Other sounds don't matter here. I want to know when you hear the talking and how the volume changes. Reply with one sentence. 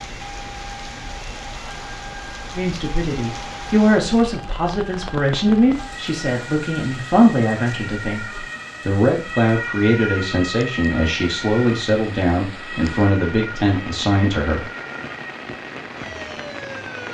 The talking can be heard from 2.5 to 14.7 s, at a steady volume.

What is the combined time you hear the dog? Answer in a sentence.
You can't hear the dog here.